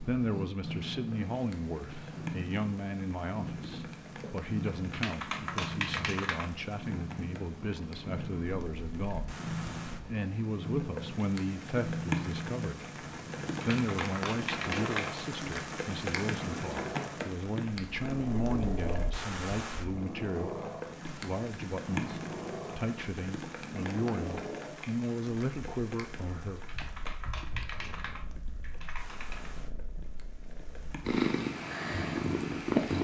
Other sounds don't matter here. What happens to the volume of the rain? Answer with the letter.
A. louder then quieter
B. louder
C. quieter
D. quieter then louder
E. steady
A.